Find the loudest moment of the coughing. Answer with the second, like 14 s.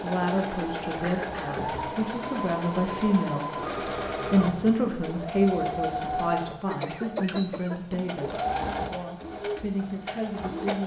7 s.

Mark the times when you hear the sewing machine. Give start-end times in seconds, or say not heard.
0.0-10.8.